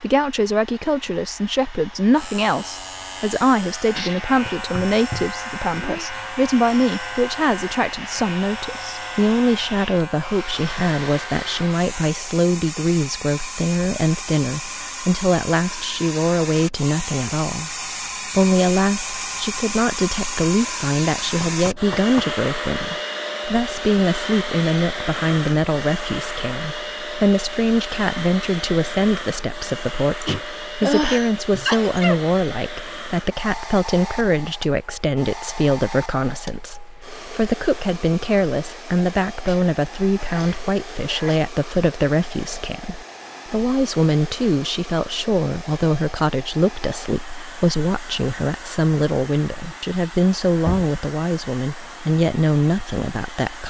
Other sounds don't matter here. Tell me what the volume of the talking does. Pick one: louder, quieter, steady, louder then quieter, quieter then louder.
steady.